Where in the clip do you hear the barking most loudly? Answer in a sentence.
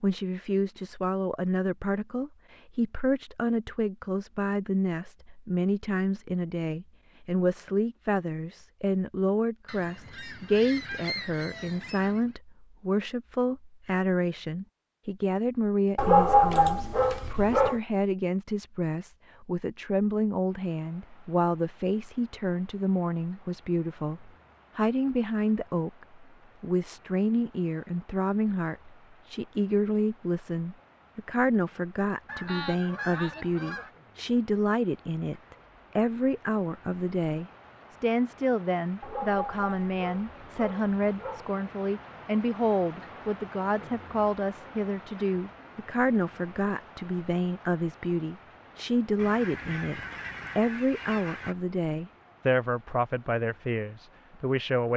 The loudest moment of the barking is at 16 seconds.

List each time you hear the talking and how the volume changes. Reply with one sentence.
You can hear the talking from 0.0 to 54.9 s, at a steady volume.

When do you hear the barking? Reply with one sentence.
The barking can be heard from 15.9 to 17.8 s and from 39.0 to 41.5 s.